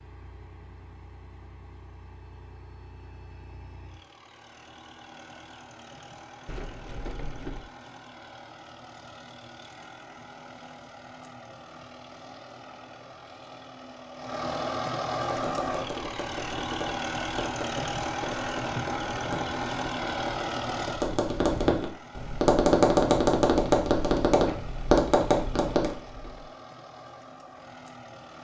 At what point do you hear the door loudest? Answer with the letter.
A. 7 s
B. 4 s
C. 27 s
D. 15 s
A.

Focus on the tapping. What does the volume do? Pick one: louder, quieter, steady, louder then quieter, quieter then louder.
louder.